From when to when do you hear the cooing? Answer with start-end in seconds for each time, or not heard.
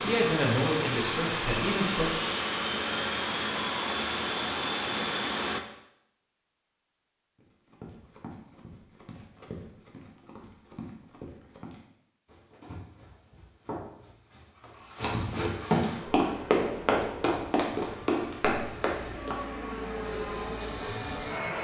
not heard.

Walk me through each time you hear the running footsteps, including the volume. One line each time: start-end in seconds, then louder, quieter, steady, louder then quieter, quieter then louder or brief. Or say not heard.
7.3-19.4 louder.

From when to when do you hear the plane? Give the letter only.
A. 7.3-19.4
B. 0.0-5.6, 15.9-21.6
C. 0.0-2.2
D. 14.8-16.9
B.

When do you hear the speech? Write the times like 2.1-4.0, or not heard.
0.0-2.2.